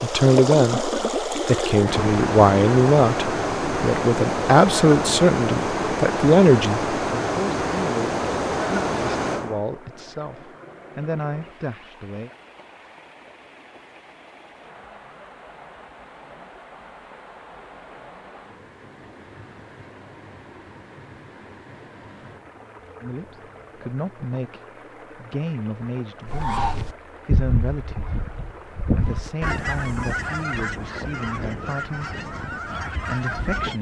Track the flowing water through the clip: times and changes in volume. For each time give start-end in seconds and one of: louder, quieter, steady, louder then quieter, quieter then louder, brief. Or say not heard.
0.0-33.7 quieter.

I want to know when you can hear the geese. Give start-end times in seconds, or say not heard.
26.2-33.7.